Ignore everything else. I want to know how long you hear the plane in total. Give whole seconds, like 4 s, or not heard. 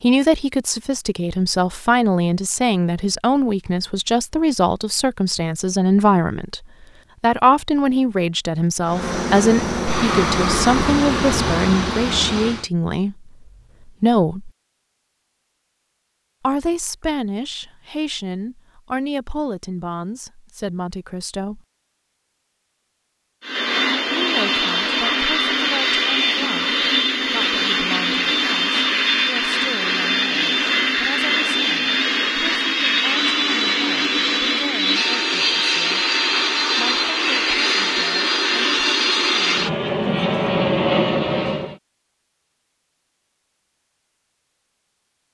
22 s.